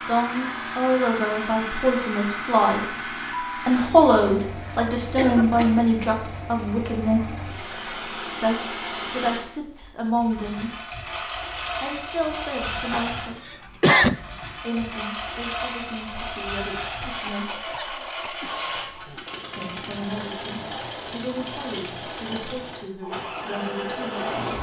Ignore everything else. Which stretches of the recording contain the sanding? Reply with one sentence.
You can't hear the sanding here.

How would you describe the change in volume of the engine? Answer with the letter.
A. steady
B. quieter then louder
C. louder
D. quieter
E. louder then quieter
A.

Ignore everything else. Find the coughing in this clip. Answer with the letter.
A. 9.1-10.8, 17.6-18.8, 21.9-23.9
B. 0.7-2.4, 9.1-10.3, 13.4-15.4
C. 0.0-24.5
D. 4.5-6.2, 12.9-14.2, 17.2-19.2
D.